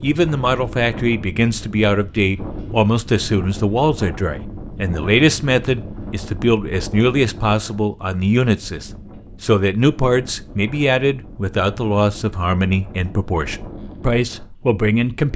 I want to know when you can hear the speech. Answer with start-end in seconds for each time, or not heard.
0.0-15.3.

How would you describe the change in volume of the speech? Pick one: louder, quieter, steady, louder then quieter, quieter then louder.
steady.